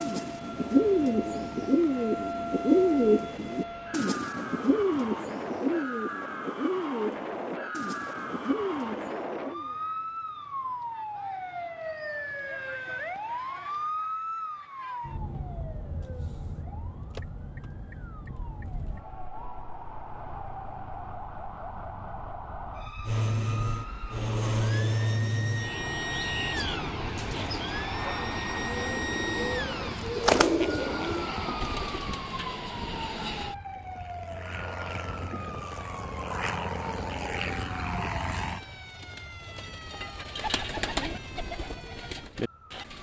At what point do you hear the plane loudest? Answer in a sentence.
The loudest moment of the plane is at 25 seconds.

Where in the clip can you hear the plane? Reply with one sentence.
You can hear the plane from 23.1 to 38.6 s.